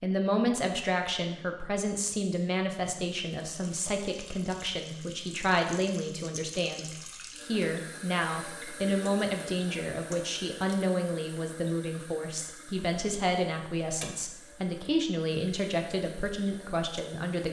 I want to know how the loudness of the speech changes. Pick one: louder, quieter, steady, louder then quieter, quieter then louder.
steady.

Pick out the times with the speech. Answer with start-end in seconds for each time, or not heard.
0.0-17.4.